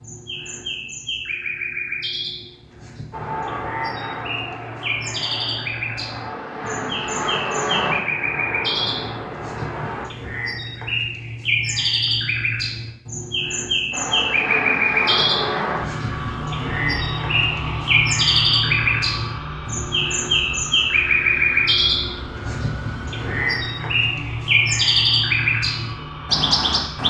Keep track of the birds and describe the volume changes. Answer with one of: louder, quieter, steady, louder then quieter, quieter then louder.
louder.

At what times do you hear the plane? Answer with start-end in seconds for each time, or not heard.
3.1-10.1, 13.9-27.0.